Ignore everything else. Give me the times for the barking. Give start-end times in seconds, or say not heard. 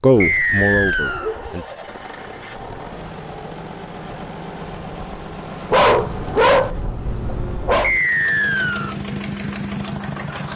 0.1-1.5, 5.7-7.9.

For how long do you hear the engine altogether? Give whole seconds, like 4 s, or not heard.
10 s.